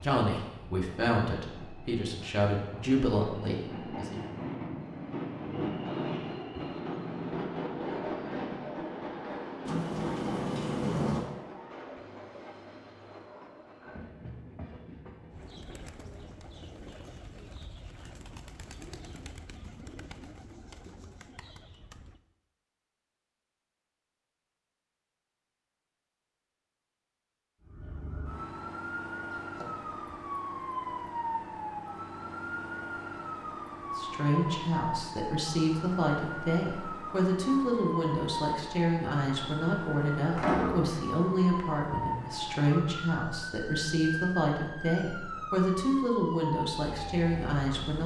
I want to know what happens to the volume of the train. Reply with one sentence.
The loudness of the train goes up, then down.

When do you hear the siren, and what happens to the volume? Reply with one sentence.
You can hear the siren from 27.6 to 48.0 s, at a steady volume.